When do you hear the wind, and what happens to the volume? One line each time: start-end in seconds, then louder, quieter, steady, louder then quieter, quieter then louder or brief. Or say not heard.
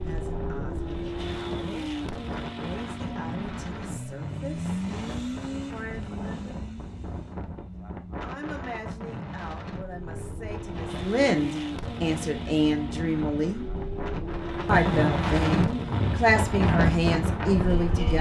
0.0-18.1 louder.